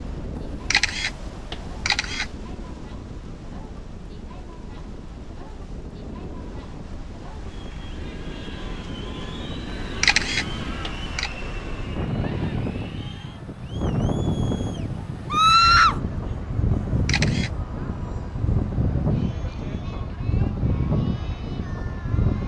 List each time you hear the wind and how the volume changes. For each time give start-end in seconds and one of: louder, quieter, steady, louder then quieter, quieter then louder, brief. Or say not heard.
0.0-22.4 louder.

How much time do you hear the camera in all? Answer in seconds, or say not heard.
3 s.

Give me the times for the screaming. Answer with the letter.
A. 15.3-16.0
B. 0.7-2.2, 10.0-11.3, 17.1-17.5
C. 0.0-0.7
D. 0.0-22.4
A.